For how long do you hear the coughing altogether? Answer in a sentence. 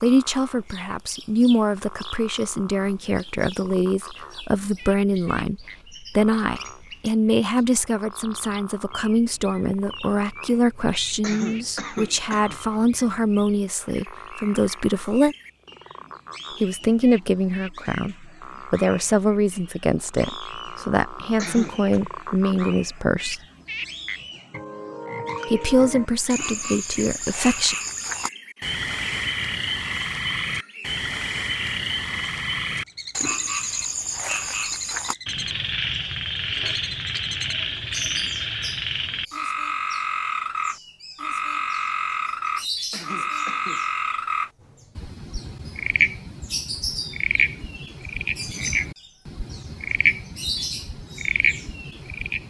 You can hear the coughing for 3 seconds altogether.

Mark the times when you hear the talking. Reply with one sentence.
The talking can be heard from 0.0 to 15.3 s, from 16.6 to 23.4 s and from 25.4 to 27.8 s.